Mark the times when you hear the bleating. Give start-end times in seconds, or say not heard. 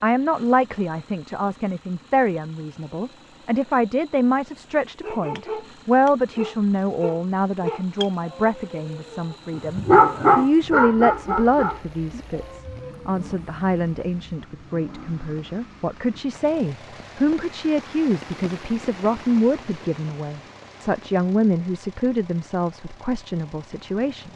not heard.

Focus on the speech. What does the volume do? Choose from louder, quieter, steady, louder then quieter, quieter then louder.
steady.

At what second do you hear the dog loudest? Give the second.
10 s.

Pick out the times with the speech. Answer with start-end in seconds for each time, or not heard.
0.0-24.3.